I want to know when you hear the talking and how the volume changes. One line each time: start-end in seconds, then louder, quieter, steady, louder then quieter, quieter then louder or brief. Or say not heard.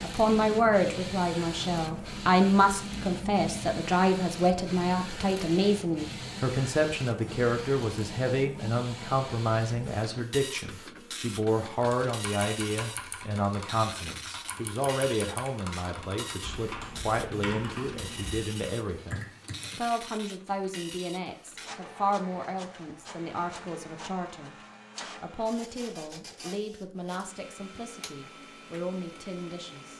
0.0-24.6 quieter
25.2-29.9 quieter then louder.